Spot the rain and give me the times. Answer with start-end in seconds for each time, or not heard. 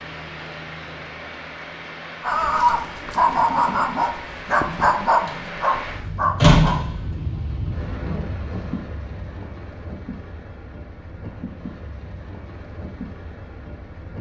0.0-14.1.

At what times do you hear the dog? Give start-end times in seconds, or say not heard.
2.2-6.8.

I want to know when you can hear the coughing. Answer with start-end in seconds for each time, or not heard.
not heard.